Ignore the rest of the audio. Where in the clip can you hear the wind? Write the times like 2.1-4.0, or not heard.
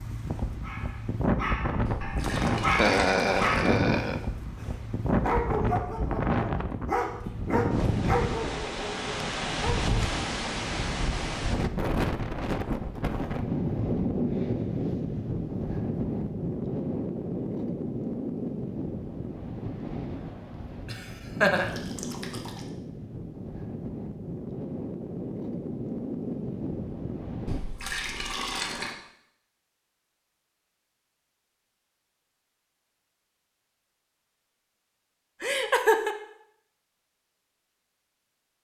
0.0-27.6.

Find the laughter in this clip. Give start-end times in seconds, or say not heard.
2.8-4.2, 20.9-21.7, 35.4-36.1.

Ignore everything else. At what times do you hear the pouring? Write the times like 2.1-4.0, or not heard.
1.9-3.7, 21.6-22.7, 27.4-28.9.